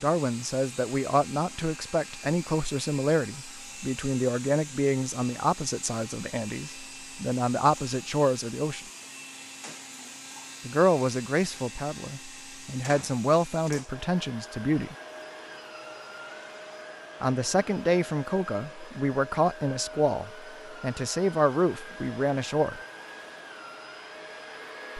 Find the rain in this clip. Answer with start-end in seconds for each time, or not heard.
not heard.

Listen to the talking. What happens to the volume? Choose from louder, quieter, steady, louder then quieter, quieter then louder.
steady.